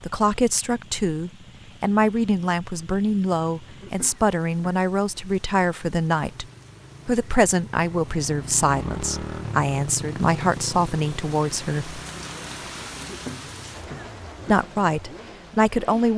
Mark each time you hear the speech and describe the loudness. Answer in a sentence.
The speech can be heard from 0.0 to 6.5 s, at a steady volume; from 7.0 to 12.0 s, at a steady volume; and briefly from 14.4 to 16.1 s.